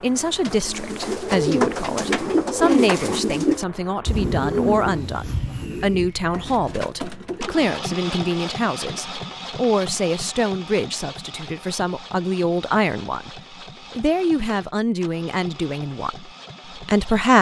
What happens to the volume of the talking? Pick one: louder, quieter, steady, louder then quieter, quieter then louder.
steady.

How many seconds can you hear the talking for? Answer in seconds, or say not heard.
17 s.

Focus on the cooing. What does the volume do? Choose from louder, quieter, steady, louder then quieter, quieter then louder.
quieter.